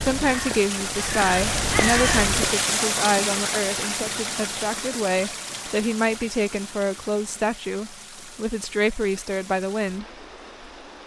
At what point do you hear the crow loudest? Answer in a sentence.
The volume of the crow peaks at 2 seconds.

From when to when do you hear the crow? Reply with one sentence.
The crow can be heard from 0.0 to 2.5 s.